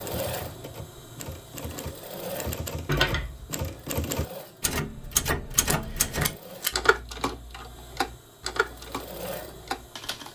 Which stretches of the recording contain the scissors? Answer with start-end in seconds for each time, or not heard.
2.9-3.5, 5.7-6.7.